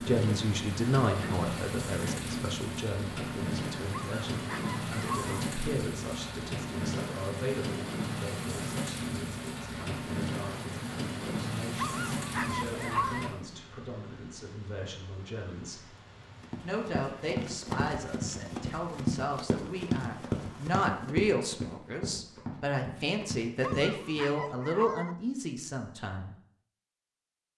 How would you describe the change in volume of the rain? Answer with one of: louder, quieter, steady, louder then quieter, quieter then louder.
quieter.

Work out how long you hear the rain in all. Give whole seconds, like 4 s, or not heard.
21 s.